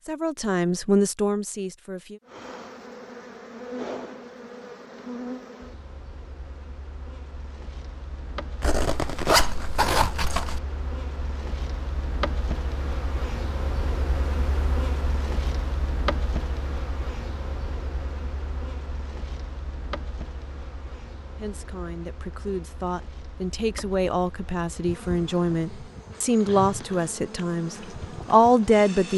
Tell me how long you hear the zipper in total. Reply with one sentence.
You can hear the zipper for 2 seconds altogether.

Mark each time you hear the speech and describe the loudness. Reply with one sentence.
The speech can be heard briefly from 0.0 to 2.2 s; and from 21.4 to 29.1 s, getting louder.